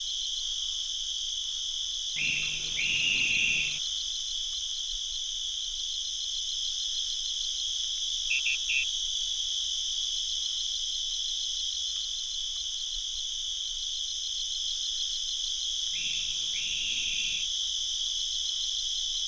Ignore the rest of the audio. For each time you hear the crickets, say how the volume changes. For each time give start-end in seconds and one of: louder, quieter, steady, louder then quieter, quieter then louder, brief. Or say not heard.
0.0-19.2 steady.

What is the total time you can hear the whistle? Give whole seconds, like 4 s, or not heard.
4 s.